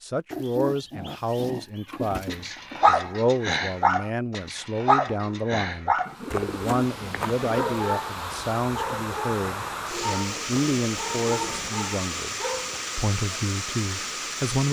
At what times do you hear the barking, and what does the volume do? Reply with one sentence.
You can hear the barking from 2.3 to 12.9 s, getting quieter.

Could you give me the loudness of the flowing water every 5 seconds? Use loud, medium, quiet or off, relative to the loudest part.
off, loud, loud.